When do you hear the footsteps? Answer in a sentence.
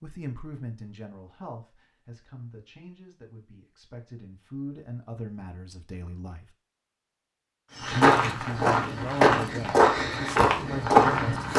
You can hear the footsteps from 7.8 to 11.5 s.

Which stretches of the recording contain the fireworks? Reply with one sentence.
The fireworks can't be heard in this clip.